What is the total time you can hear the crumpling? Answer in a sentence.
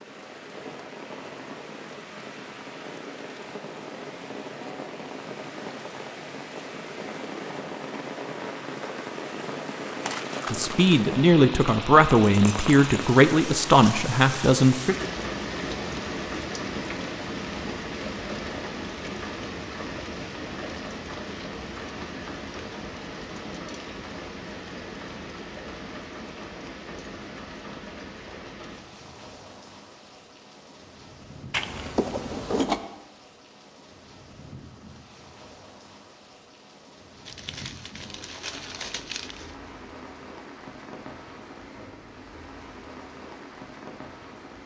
The crumpling can be heard for 3 seconds in total.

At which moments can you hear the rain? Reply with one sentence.
You can hear the rain from 0.0 to 44.6 s.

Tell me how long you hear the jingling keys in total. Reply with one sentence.
The jingling keys can be heard for 3 seconds in total.